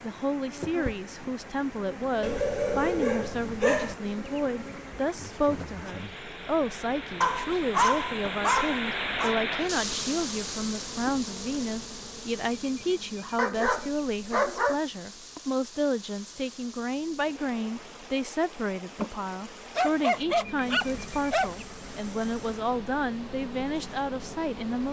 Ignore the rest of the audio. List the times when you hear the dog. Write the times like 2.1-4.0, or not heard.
2.2-4.0, 7.2-9.3, 13.3-14.8, 19.8-21.5.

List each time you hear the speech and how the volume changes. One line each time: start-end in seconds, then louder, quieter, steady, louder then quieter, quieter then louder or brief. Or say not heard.
0.0-24.8 steady.